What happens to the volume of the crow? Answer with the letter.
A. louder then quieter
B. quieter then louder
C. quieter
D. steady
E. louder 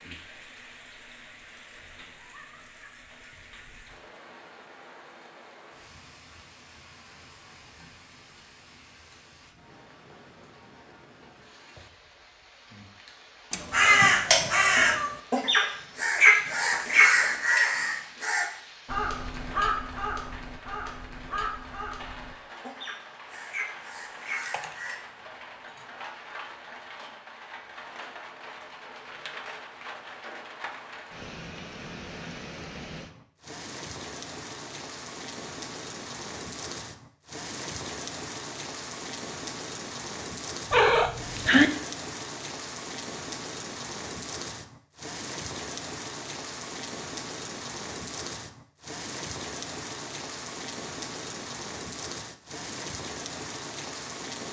C.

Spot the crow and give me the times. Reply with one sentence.
The crow can be heard from 13.7 to 24.9 s.